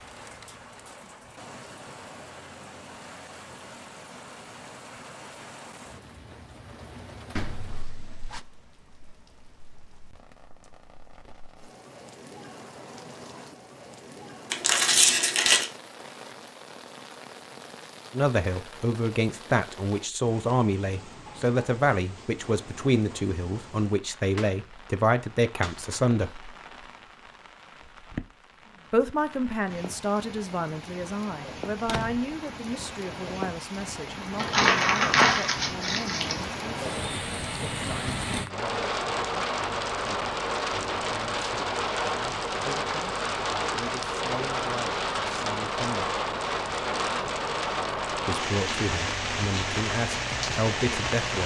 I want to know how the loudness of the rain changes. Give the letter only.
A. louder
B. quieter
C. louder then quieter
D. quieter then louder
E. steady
A.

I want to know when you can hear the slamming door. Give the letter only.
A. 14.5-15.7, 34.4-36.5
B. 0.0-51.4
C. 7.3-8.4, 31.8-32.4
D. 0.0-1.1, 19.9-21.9
C.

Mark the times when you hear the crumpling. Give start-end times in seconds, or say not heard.
14.5-15.7, 34.4-36.5.